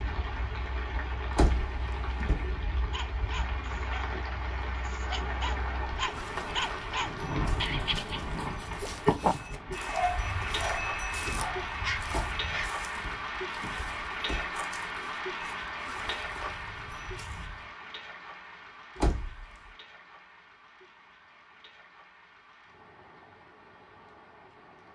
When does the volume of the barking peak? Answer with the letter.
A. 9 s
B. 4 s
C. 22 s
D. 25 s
A.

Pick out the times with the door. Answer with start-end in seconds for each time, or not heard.
1.4-2.5, 12.1-14.5, 18.9-19.4.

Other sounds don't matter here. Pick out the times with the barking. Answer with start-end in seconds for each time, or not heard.
2.9-12.7.